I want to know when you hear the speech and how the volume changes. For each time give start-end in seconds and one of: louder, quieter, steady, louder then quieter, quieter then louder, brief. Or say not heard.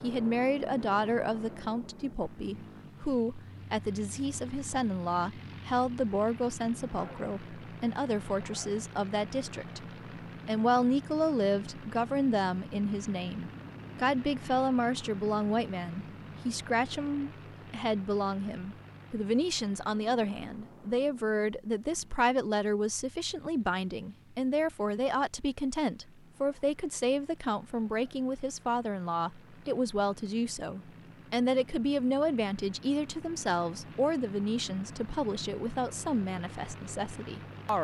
0.0-9.8 steady
10.4-37.8 steady.